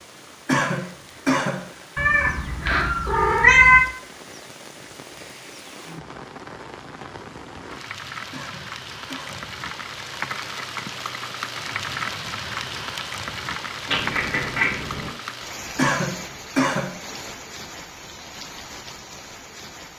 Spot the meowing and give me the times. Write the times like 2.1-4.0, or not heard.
1.9-3.9, 13.9-15.1.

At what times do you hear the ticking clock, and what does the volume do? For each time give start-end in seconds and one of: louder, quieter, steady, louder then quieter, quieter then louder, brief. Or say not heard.
not heard.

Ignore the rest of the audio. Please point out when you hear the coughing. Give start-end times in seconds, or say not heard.
0.5-1.6, 8.3-9.4, 15.8-16.9.